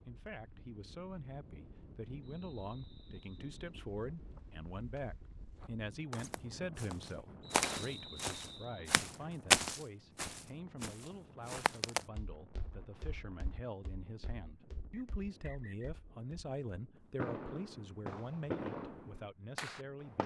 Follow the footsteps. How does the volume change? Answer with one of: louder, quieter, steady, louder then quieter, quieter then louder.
louder then quieter.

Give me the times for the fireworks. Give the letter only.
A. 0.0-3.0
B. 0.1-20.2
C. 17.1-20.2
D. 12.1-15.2
C.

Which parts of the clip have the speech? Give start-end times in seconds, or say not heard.
0.1-20.2.